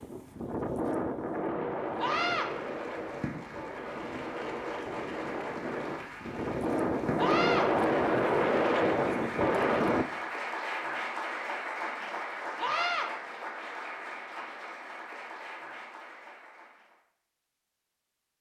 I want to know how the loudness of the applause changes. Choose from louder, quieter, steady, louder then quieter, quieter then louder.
louder then quieter.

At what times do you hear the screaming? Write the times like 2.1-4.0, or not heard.
1.9-2.5, 7.2-7.7, 12.6-13.1.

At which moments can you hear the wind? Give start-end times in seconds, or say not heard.
0.0-10.1.